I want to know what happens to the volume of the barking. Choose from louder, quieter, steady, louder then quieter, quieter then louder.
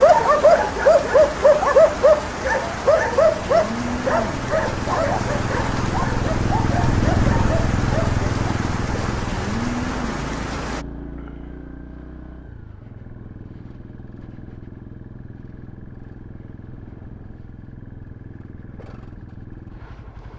quieter.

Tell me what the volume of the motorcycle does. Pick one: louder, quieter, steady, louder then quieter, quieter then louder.
louder then quieter.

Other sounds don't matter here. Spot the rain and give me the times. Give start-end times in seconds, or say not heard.
0.0-10.8.